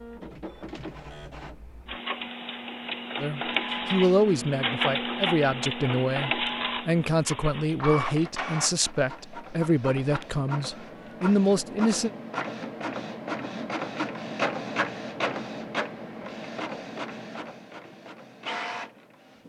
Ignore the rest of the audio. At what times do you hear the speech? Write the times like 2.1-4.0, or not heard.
3.2-12.1.